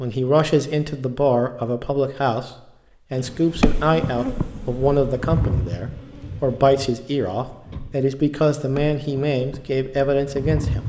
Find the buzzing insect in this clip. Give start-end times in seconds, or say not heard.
3.1-10.8.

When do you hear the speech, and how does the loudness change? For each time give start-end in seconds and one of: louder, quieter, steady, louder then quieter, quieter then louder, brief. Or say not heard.
0.0-2.5 brief
3.1-10.8 steady.